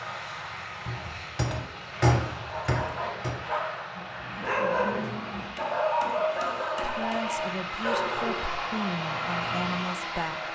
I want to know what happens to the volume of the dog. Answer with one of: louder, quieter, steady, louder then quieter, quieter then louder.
louder then quieter.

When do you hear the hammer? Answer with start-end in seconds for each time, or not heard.
0.8-3.4, 5.5-7.2.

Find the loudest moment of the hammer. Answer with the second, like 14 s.
2 s.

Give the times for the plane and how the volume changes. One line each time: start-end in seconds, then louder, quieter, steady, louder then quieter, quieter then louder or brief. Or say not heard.
0.0-10.4 louder.